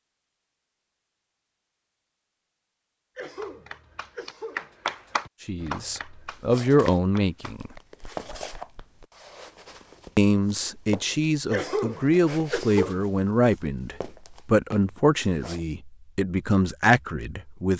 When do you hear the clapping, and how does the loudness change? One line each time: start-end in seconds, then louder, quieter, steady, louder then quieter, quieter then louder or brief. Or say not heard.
3.4-9.1 louder then quieter.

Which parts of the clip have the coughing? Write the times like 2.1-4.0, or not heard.
3.1-4.7, 11.5-13.1.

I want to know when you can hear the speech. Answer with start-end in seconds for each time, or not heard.
5.4-7.7, 10.2-17.7.